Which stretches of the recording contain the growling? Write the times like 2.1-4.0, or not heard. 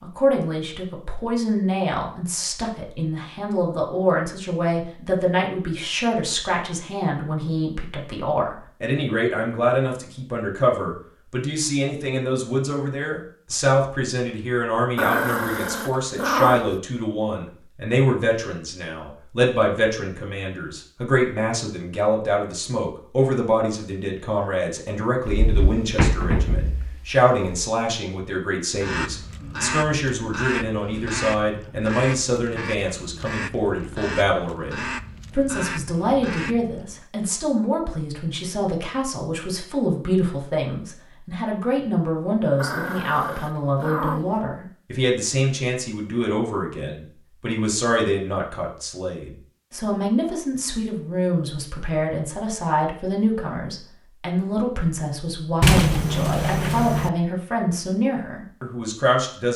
14.9-16.8, 42.5-44.4.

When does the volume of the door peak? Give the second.
56 s.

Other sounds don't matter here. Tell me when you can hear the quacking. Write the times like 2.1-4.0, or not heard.
28.7-37.0.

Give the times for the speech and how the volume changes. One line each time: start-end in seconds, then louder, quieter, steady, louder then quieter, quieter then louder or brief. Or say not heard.
0.0-59.5 steady.